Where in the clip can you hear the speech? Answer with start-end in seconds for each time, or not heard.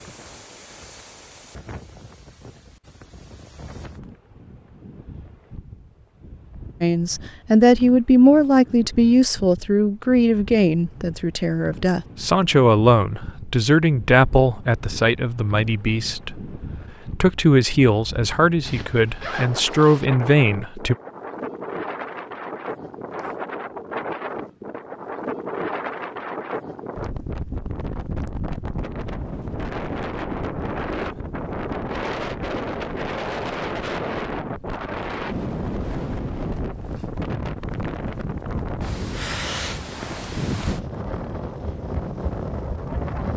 6.8-20.9.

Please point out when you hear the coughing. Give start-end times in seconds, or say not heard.
not heard.